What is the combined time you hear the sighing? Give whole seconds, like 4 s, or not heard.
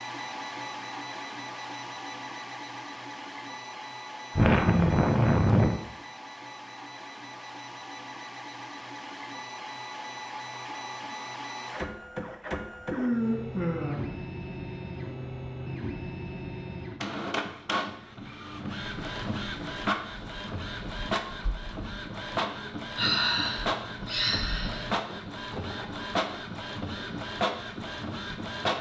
5 s.